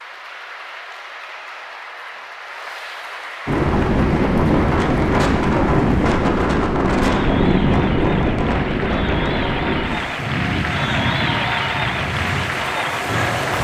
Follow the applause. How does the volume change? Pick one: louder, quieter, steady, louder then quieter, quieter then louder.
louder.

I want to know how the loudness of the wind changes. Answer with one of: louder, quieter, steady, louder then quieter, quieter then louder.
quieter.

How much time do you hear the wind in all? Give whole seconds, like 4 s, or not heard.
10 s.